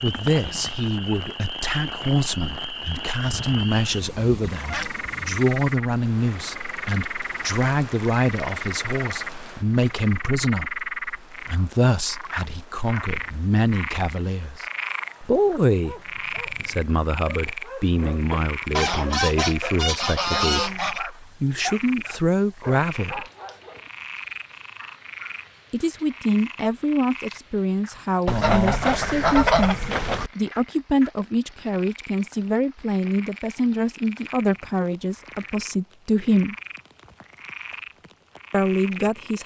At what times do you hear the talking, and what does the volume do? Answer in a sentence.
The talking can be heard from 0.0 to 23.2 s, at a steady volume; from 25.7 to 36.5 s, at a steady volume; and briefly from 38.5 to 39.4 s.